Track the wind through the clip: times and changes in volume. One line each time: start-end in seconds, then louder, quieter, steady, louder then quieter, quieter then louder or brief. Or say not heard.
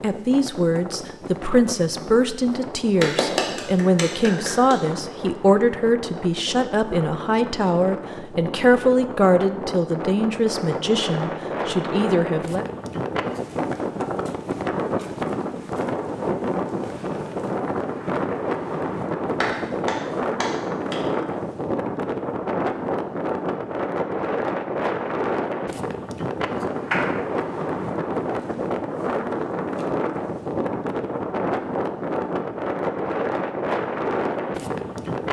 0.0-35.2 louder.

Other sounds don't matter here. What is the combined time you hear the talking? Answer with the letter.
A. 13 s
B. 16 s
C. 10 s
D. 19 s
A.